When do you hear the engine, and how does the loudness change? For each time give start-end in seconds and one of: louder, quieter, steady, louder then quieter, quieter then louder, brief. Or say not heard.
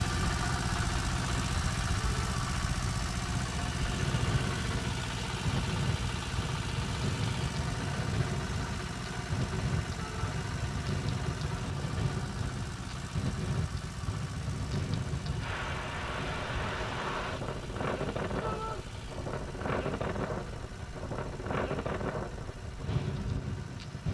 0.0-24.0 quieter.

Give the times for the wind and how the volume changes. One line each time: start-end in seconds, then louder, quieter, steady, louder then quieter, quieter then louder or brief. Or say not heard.
0.0-24.0 steady.